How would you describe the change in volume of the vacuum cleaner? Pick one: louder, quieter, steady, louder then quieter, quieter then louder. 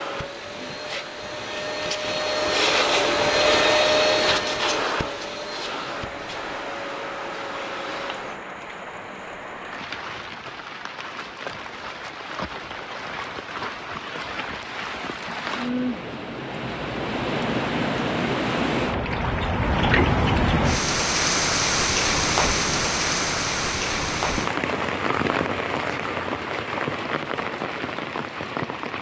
louder then quieter.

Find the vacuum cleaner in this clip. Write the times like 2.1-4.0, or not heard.
0.0-8.4.